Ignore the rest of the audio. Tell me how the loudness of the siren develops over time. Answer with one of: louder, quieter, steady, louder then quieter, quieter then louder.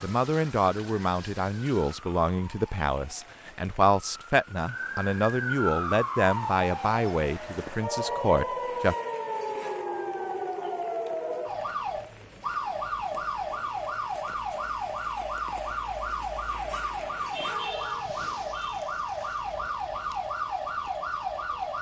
steady.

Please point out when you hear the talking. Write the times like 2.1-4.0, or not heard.
0.0-8.9.